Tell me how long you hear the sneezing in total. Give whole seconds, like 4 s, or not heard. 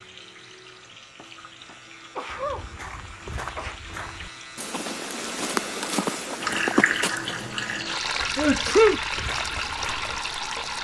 3 s.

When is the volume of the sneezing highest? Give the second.
9 s.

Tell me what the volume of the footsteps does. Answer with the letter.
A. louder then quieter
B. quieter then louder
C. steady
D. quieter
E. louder
A.